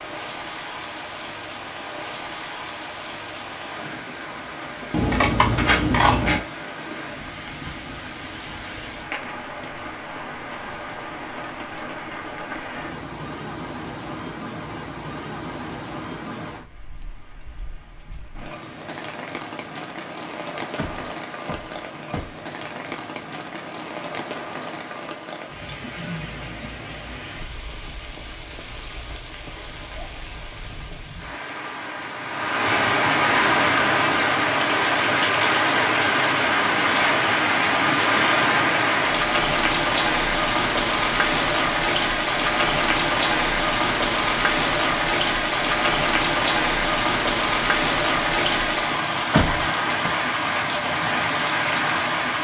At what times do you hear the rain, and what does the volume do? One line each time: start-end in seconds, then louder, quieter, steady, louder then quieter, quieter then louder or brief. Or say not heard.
0.0-52.4 louder.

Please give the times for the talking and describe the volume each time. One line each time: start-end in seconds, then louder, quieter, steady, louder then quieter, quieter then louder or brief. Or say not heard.
not heard.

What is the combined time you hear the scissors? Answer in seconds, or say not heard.
2 s.